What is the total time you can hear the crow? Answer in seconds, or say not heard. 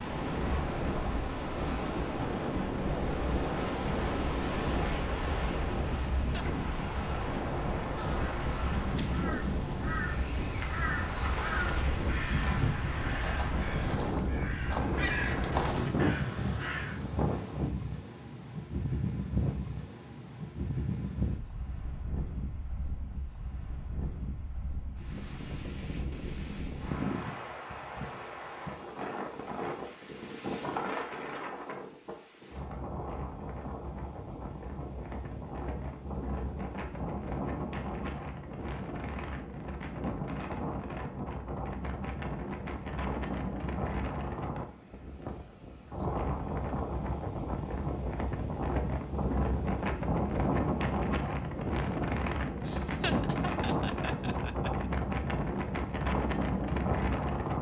9 s.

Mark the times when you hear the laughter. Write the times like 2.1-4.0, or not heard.
6.2-6.6, 52.6-54.9.